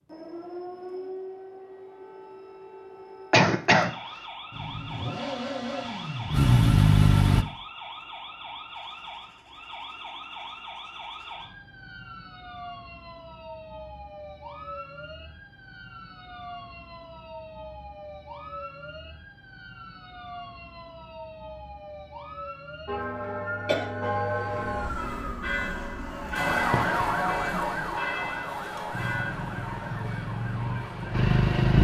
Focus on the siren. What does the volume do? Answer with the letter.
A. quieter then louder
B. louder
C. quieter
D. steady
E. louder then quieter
B.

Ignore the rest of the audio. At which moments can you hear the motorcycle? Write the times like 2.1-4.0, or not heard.
4.5-7.5, 28.9-31.8.